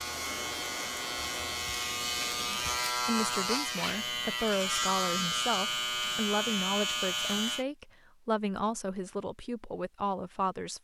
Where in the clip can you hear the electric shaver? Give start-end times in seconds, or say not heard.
0.0-7.7.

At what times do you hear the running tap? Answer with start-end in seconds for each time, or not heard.
0.0-2.8.